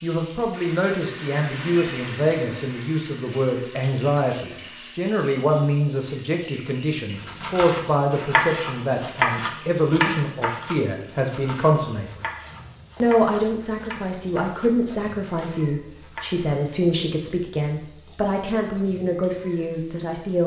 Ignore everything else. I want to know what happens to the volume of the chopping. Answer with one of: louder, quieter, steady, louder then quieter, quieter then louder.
quieter.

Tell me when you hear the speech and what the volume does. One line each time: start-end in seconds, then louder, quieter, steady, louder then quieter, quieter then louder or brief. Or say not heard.
0.0-12.2 steady
13.0-20.4 steady.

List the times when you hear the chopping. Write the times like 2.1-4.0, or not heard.
7.2-16.6.